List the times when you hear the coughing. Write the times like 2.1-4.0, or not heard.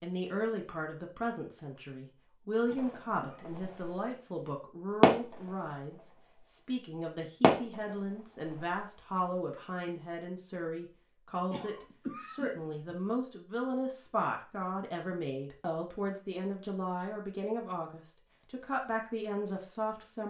2.6-3.5, 11.4-12.9.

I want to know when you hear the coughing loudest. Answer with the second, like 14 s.
12 s.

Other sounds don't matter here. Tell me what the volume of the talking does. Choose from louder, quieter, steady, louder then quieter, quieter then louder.
steady.